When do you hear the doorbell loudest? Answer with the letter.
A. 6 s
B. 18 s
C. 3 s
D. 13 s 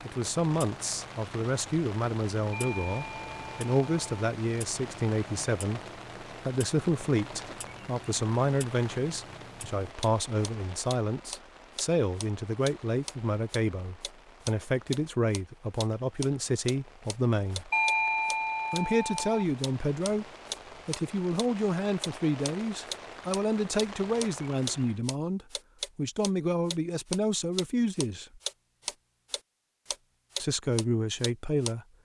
B.